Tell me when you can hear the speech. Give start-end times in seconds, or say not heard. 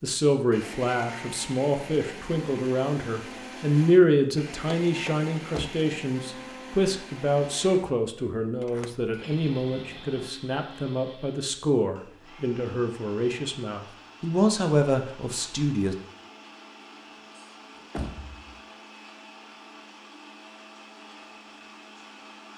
0.0-15.9.